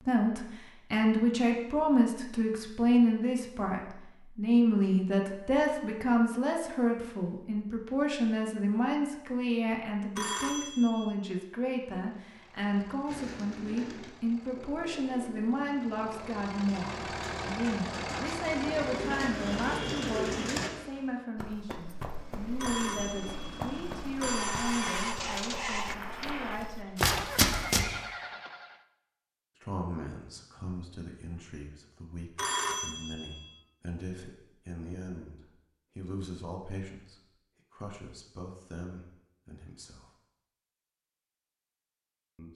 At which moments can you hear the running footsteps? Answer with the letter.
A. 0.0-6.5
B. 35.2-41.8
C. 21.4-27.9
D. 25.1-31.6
C.